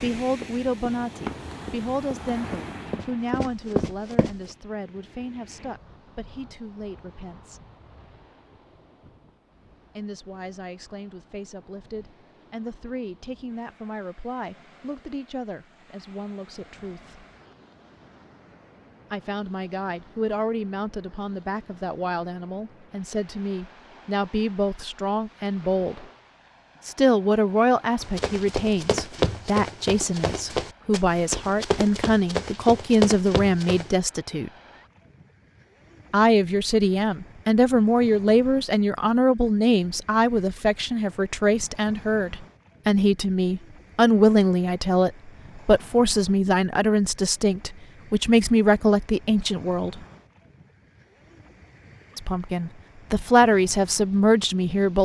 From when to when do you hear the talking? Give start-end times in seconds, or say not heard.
0.0-7.6, 9.9-17.2, 19.1-26.1, 26.8-34.5, 36.1-50.0, 52.1-55.0.